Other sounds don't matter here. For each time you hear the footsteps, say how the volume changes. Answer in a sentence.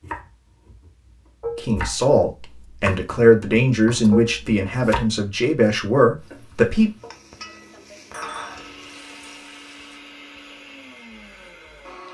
You can't hear the footsteps here.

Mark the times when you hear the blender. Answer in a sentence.
You can hear the blender from 8.3 to 12.0 s.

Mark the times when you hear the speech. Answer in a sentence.
The speech can be heard from 1.6 to 6.9 s.